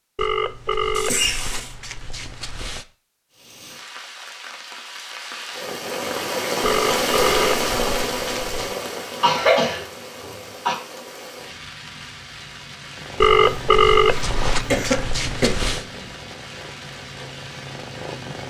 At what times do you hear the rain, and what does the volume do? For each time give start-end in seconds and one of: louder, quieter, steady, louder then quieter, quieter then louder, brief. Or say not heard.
3.3-18.4 louder then quieter.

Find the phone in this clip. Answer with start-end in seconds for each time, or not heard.
0.1-2.9, 6.6-8.8, 13.2-15.8.